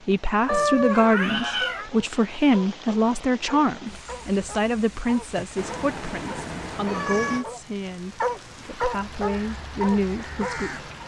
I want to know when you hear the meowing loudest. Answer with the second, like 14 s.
1 s.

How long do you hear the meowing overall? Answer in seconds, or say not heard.
3 s.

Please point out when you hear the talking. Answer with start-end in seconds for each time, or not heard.
0.1-10.8.